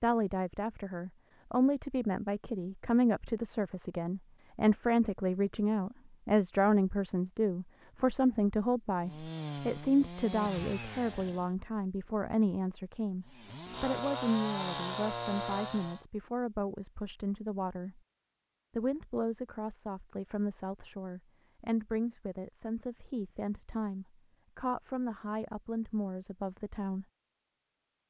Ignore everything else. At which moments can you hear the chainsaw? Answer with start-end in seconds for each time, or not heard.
9.0-11.5, 13.2-16.1.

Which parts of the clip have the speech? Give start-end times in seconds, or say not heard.
0.0-18.0, 18.8-27.1.